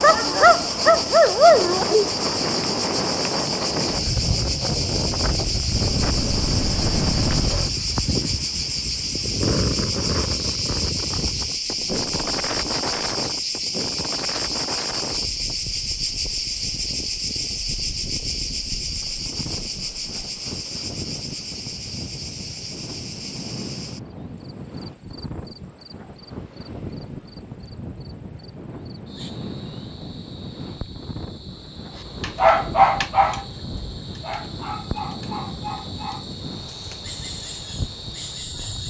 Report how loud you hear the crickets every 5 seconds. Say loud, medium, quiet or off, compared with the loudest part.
loud, loud, loud, loud, medium, quiet, quiet, medium.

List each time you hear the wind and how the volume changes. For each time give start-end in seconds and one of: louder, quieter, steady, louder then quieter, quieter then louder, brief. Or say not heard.
0.0-38.8 quieter.